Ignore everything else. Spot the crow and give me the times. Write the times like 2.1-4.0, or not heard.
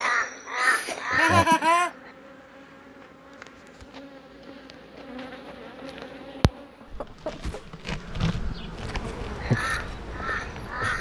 0.0-2.1, 9.3-10.9.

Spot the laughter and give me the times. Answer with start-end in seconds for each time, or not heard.
1.1-1.9, 6.8-7.6.